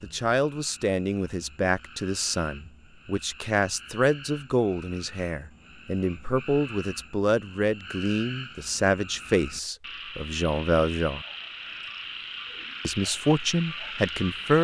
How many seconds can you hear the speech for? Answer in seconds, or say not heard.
13 s.